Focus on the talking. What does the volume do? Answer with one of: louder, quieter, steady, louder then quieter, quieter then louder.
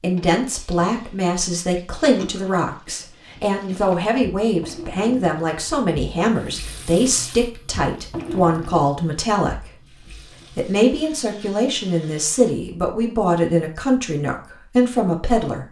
steady.